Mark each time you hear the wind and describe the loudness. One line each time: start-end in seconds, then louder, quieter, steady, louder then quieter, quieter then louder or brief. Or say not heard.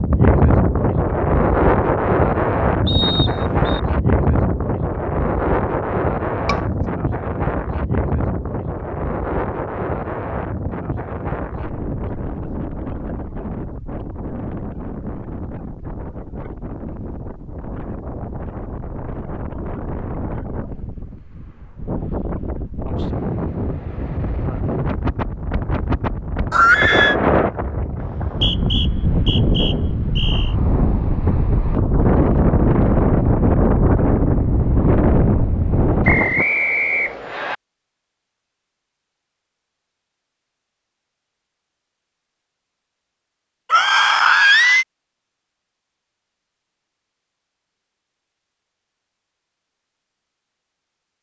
0.0-36.5 quieter then louder.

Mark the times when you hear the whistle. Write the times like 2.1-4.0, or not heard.
2.9-3.8, 28.0-30.6, 36.0-37.5.